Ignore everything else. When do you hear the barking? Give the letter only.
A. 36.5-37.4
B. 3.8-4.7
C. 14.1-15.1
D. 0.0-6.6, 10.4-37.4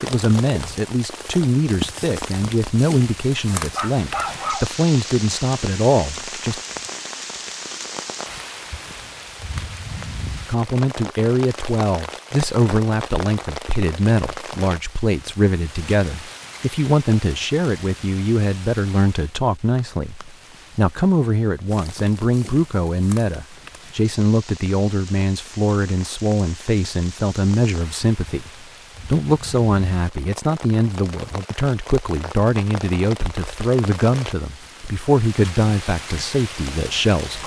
B.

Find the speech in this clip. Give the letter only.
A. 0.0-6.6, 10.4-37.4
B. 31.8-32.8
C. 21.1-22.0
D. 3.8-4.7
A.